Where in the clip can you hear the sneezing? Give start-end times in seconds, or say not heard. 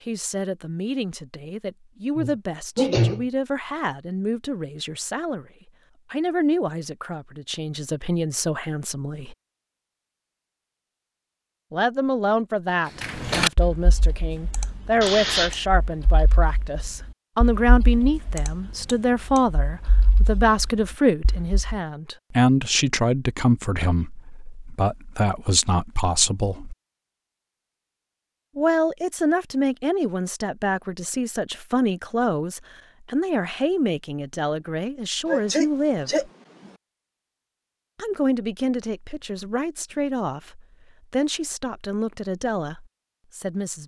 2.1-3.2, 15.0-15.6, 35.2-36.7.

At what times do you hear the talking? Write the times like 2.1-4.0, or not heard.
0.0-5.5, 6.1-9.3, 11.7-26.8, 28.6-36.3, 38.0-43.8.